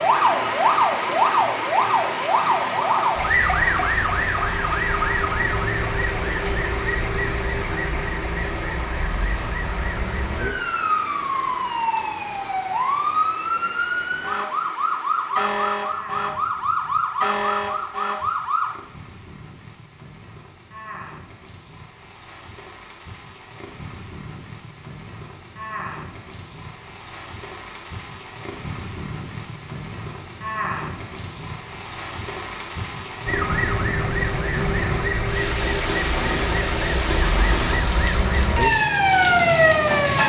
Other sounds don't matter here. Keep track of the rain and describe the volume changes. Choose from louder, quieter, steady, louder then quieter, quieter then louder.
quieter then louder.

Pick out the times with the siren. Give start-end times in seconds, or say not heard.
0.0-18.8, 33.2-40.2.